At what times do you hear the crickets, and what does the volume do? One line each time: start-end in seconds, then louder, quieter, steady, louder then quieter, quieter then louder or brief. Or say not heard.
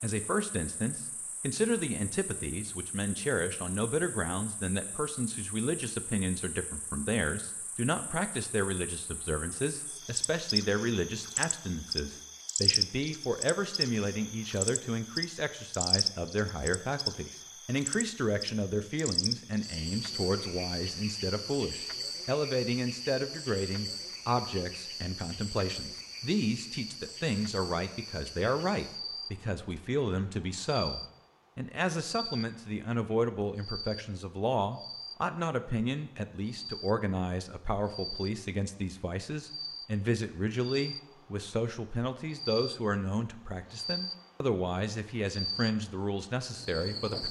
0.0-47.2 louder then quieter.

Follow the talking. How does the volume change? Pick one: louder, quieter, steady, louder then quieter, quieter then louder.
steady.